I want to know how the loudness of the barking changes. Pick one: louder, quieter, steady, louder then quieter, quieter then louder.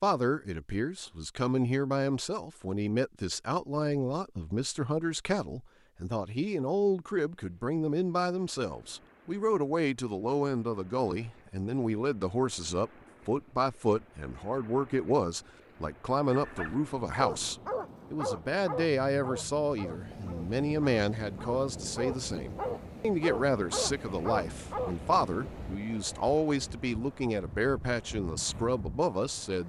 quieter then louder.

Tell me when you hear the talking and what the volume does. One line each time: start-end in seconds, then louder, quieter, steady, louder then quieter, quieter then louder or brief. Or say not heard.
0.0-29.6 steady.